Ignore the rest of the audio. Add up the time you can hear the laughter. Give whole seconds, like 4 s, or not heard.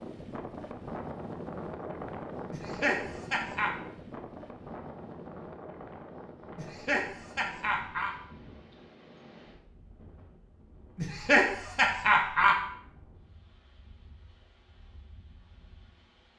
4 s.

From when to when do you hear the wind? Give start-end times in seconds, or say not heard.
0.0-16.3.